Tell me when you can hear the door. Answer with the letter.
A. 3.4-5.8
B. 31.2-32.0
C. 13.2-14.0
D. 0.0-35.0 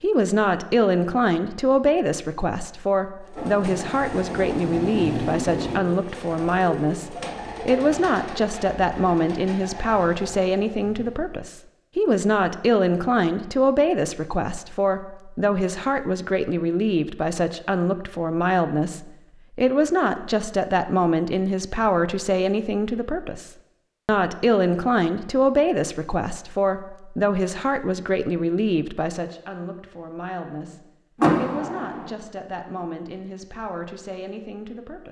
B.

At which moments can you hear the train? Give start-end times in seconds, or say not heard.
3.4-5.8.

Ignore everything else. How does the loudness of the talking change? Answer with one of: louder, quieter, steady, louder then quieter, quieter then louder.
quieter.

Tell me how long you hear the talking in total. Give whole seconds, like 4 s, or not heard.
35 s.